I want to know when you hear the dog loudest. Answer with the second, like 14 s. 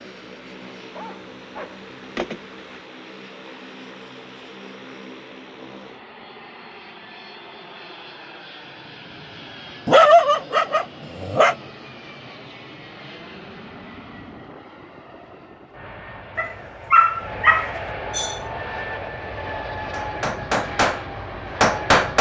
10 s.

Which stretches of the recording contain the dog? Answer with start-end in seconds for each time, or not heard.
0.9-2.8, 9.8-11.6, 16.4-18.4.